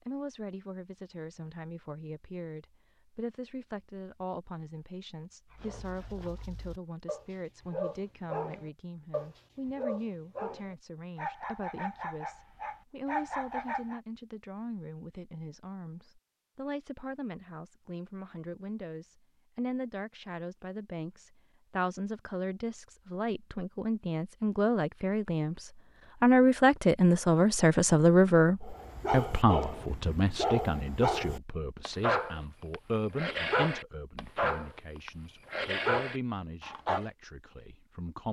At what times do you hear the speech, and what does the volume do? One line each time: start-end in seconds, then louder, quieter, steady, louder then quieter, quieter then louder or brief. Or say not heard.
0.0-38.2 louder then quieter.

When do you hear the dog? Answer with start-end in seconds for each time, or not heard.
5.5-14.0, 28.6-37.0.